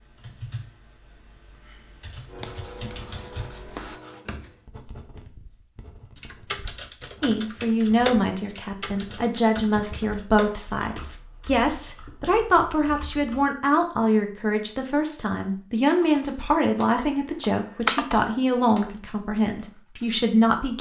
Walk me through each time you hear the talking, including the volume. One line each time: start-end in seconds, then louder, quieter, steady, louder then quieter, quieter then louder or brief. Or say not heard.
7.2-20.7 steady.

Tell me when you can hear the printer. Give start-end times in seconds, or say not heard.
not heard.